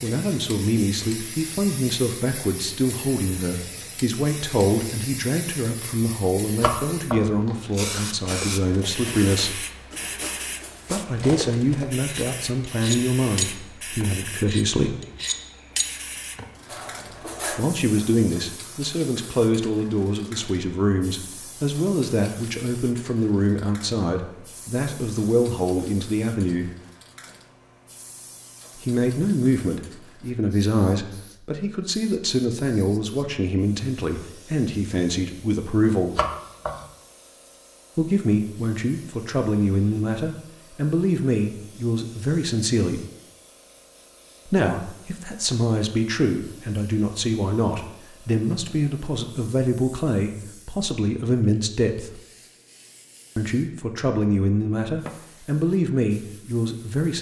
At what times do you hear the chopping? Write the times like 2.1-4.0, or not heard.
6.6-7.3, 36.1-36.9.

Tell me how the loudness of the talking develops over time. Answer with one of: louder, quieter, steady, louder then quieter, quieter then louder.
steady.